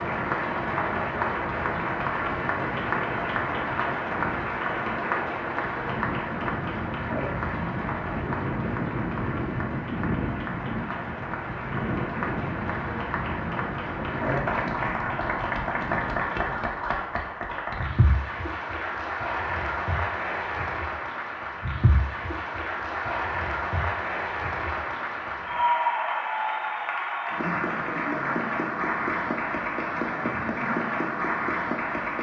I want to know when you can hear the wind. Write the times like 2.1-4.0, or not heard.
0.0-16.9.